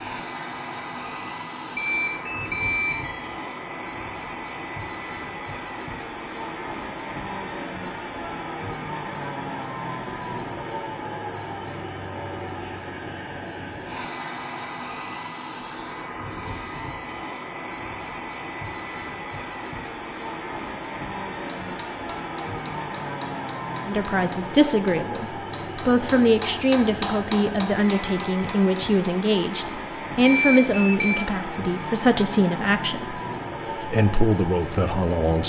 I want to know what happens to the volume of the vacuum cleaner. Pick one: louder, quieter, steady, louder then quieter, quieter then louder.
steady.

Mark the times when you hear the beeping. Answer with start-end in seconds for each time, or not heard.
1.8-3.4, 30.2-31.2.